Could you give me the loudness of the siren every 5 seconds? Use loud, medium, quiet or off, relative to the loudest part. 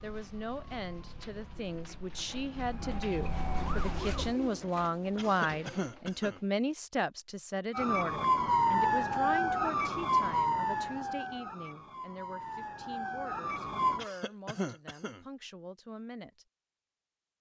quiet, loud, medium, off.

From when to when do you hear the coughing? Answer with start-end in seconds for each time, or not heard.
5.2-6.4, 13.9-15.2.